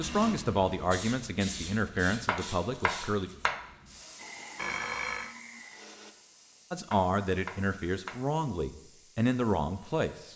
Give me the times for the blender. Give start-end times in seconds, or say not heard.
4.2-6.2.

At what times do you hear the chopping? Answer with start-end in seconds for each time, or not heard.
2.2-3.6, 6.9-8.2.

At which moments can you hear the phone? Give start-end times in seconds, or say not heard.
4.5-5.3.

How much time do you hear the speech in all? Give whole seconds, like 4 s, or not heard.
7 s.